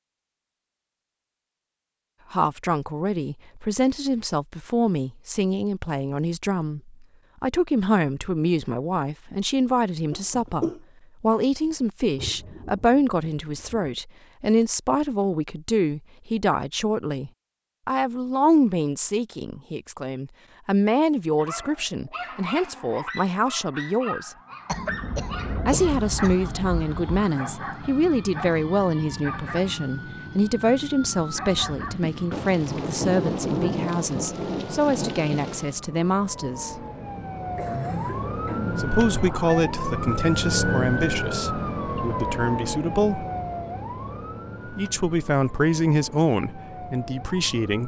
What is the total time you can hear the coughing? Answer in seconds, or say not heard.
4 s.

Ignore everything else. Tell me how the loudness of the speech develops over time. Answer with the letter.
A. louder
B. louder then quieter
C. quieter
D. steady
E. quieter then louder
D.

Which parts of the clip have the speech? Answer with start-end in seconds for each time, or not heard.
2.3-24.4, 25.6-36.8, 38.7-43.2, 44.7-47.8.